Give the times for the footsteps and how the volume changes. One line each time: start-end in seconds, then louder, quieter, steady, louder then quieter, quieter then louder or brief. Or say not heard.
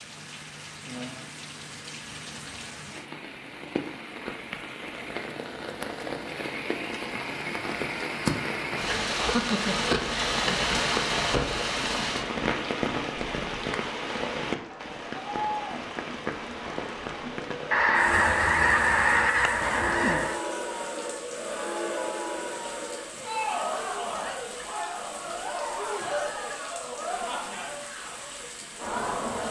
not heard.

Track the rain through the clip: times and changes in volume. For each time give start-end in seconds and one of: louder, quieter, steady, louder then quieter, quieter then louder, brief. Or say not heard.
0.0-29.4 louder then quieter.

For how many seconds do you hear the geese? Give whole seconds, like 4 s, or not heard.
3 s.